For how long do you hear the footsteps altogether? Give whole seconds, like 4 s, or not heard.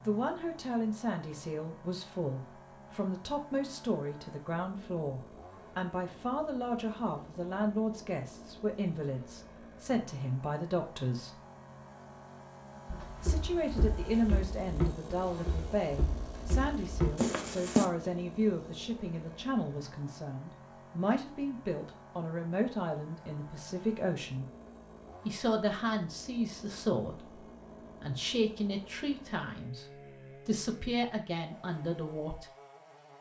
5 s.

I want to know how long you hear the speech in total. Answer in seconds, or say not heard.
30 s.